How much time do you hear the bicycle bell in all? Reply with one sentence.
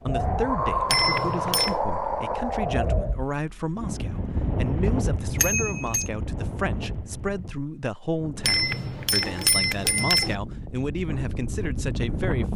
You can hear the bicycle bell for 4 seconds altogether.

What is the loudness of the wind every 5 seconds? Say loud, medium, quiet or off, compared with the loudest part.
loud, medium, medium.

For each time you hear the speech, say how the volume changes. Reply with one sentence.
The speech can be heard from 0.0 to 12.5 s, at a steady volume.